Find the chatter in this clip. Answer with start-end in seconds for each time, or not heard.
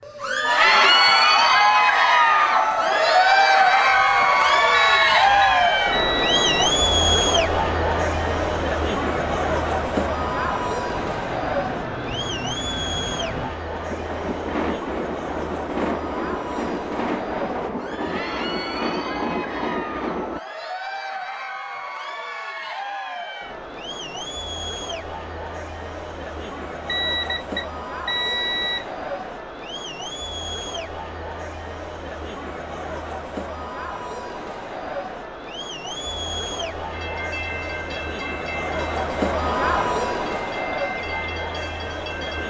0.1-42.4.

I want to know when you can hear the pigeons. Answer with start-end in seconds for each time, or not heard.
not heard.